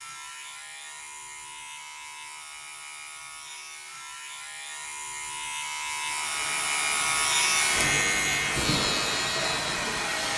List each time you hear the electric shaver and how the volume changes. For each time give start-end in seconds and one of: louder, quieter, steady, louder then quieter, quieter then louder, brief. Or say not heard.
0.0-10.3 louder.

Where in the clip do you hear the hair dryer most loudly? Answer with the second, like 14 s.
10 s.